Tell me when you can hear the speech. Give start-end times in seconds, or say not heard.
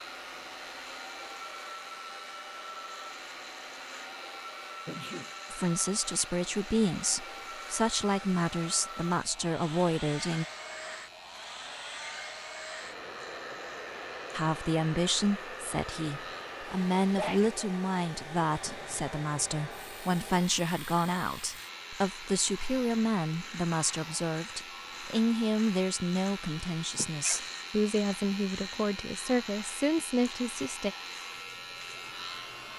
5.5-10.4, 14.3-30.9.